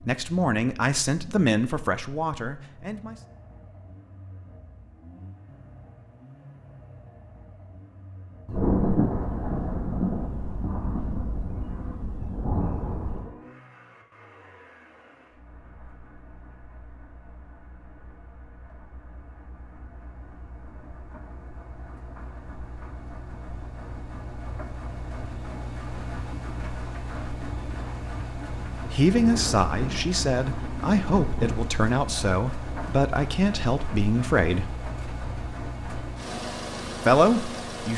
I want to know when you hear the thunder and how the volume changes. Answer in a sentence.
You can hear the thunder from 8.4 to 13.3 s, getting quieter then louder; and briefly from 29.1 to 31.6 s.